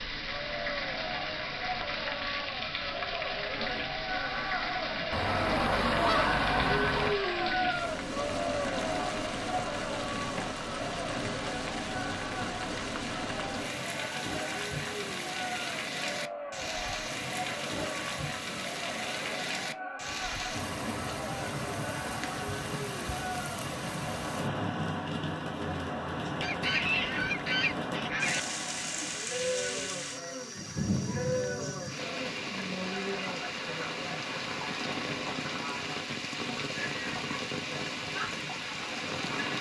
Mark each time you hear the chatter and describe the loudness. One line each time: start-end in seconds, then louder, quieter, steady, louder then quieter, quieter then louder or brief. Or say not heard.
0.1-39.5 quieter.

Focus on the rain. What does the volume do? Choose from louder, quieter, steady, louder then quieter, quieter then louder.
steady.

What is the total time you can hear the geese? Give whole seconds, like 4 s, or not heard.
4 s.